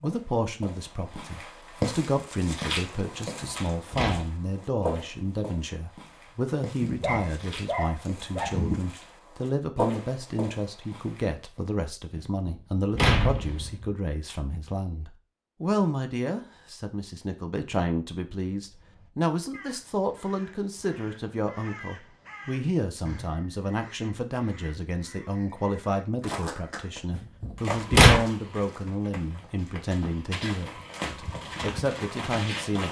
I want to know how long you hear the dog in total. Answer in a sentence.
The dog can be heard for 2 seconds in total.